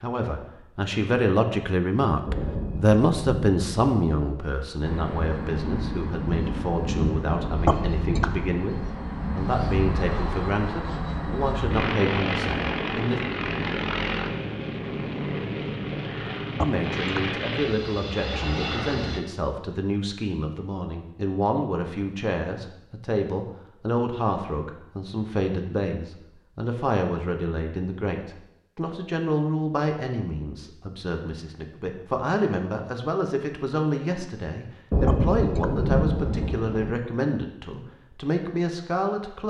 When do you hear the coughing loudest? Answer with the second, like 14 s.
8 s.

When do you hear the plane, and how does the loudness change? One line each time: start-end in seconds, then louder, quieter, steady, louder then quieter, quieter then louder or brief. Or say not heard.
4.8-19.2 steady.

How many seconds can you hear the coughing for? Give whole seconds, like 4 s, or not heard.
2 s.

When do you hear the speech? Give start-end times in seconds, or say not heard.
0.0-13.2, 16.6-39.4.